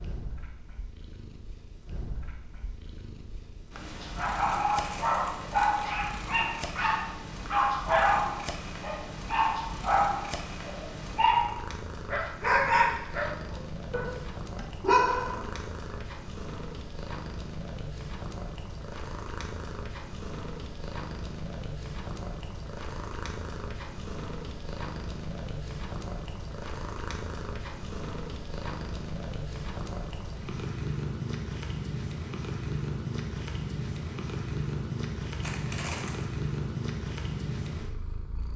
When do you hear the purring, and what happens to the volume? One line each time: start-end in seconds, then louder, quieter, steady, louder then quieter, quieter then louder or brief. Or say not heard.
0.0-38.5 louder.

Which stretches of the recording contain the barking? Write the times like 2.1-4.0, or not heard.
4.2-15.7.